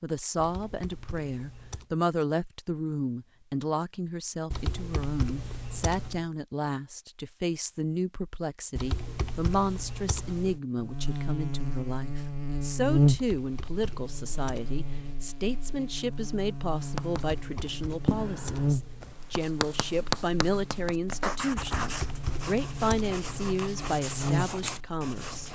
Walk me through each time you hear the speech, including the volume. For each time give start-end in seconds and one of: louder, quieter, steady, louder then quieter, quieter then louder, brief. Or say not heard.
0.0-25.5 steady.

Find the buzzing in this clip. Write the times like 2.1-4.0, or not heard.
10.8-25.5.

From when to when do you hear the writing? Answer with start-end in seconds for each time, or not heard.
16.8-25.5.